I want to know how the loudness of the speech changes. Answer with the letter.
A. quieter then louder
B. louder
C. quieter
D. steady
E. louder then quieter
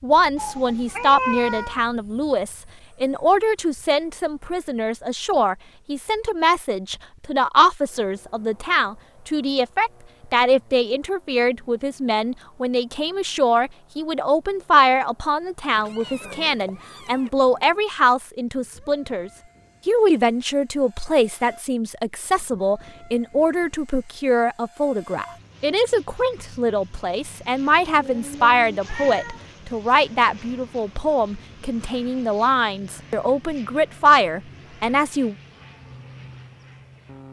D.